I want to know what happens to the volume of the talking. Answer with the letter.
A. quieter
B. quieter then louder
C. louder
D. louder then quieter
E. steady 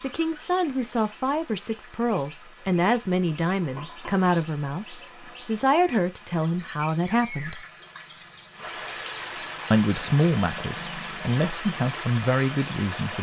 E.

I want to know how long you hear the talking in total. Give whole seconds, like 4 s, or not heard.
11 s.